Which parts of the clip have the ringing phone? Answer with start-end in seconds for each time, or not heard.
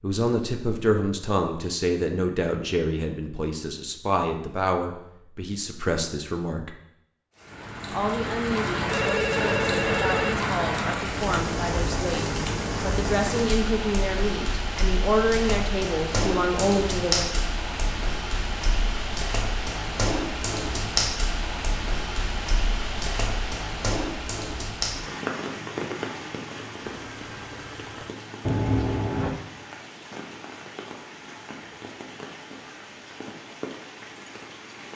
8.8-10.4, 26.9-27.9.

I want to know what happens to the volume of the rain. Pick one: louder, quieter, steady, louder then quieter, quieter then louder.
quieter.